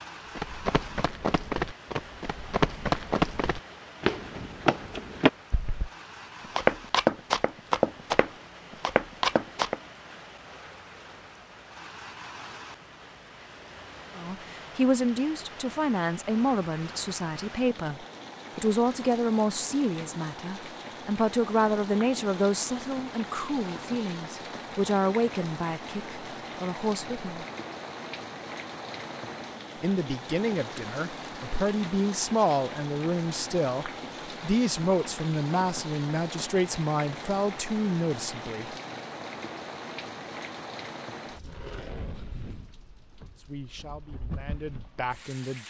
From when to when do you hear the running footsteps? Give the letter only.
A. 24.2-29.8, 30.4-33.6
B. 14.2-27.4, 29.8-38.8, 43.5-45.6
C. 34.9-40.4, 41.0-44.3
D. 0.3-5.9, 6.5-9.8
D.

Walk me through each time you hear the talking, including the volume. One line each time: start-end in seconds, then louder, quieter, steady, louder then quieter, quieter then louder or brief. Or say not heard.
14.2-27.4 steady
29.8-38.8 steady
43.5-45.6 brief.